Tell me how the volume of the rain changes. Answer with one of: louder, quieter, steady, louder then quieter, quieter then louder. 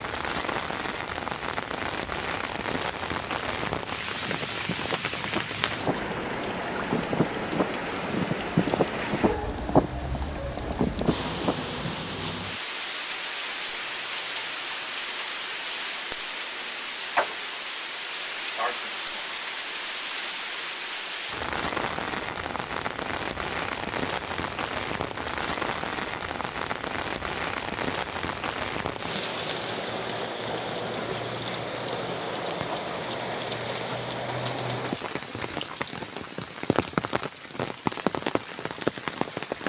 steady.